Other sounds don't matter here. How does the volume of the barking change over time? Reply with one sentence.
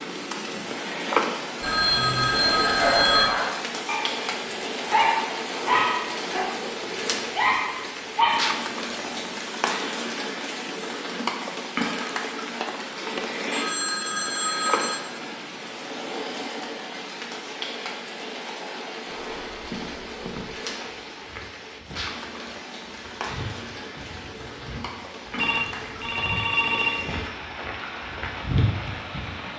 The volume of the barking stays about the same.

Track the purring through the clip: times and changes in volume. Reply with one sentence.
The purring can't be heard in this clip.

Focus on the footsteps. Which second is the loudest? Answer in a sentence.
The volume of the footsteps peaks at 29 seconds.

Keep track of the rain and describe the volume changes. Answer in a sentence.
The volume of the rain goes down.